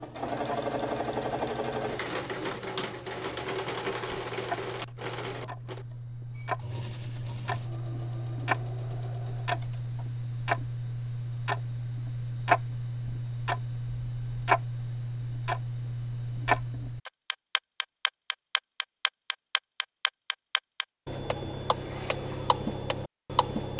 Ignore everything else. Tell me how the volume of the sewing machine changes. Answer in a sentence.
The volume of the sewing machine goes down.